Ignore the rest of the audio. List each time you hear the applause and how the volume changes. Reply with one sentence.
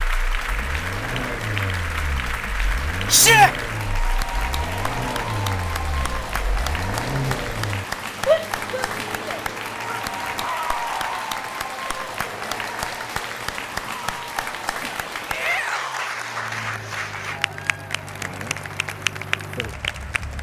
You can hear the applause from 0.0 to 20.3 s, at a steady volume.